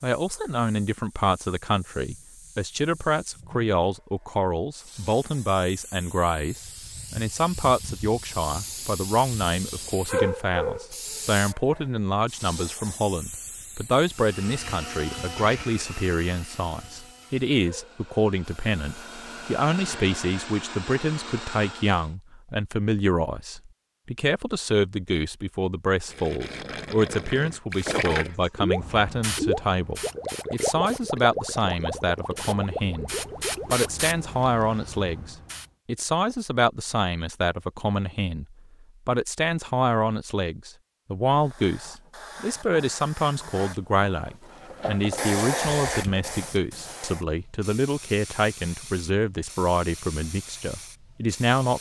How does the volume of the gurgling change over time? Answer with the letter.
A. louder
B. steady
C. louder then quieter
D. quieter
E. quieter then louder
C.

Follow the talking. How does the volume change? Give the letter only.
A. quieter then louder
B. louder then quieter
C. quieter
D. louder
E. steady
E.